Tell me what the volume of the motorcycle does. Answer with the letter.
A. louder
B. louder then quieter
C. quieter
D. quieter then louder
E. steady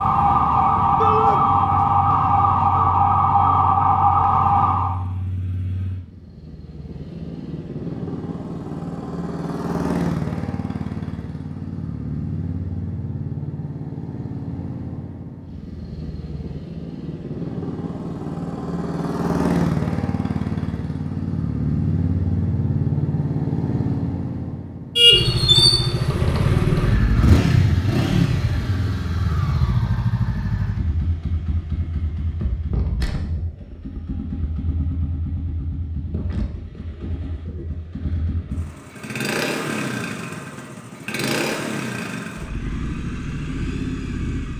B.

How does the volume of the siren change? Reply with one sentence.
The volume of the siren stays about the same.